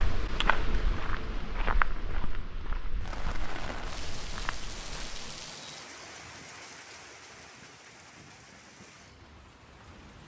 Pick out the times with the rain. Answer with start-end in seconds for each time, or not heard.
3.0-10.2.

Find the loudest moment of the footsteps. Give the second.
2 s.